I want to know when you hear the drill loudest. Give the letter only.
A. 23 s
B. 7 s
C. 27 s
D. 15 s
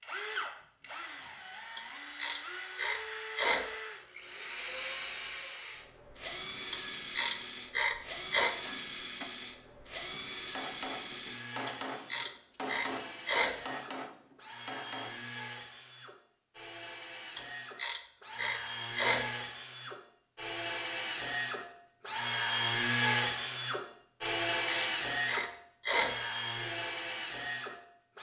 A.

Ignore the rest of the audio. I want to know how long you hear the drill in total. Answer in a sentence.
You can hear the drill for 28 seconds altogether.